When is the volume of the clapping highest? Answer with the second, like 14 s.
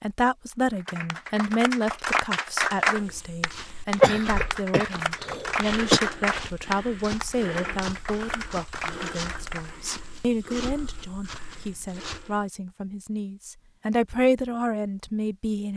3 s.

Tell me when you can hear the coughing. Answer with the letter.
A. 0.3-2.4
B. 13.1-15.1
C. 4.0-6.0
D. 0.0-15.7
C.